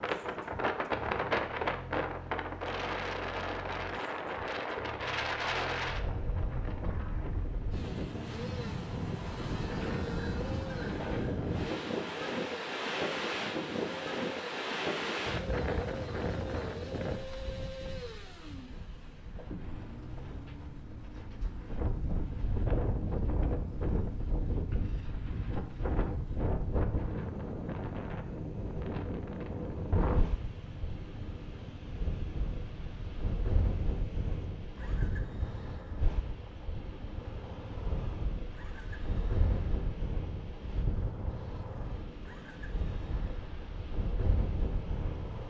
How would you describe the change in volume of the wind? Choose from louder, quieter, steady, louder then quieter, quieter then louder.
quieter.